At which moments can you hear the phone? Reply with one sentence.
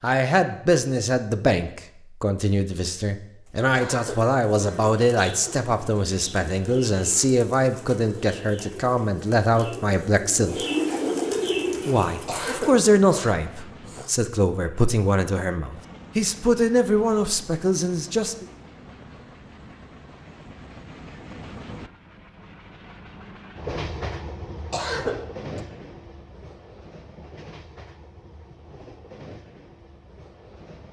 The phone can't be heard in this clip.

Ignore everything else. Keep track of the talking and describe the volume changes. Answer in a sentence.
The volume of the talking stays about the same.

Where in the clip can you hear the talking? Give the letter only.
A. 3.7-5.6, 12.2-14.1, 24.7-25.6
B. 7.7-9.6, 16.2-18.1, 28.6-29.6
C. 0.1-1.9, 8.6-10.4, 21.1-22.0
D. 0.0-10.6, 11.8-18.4
D.